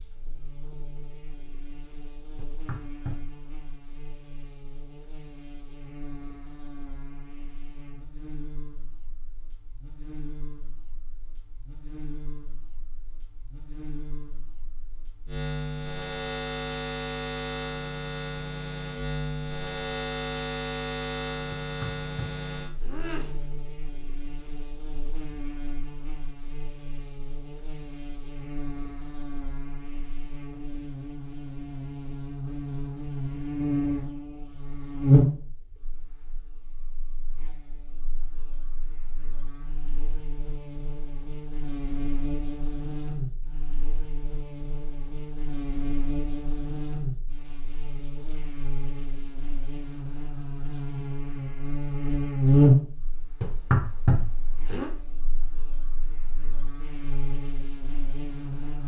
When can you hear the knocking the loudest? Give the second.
54 s.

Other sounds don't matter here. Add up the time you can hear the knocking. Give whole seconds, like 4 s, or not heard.
4 s.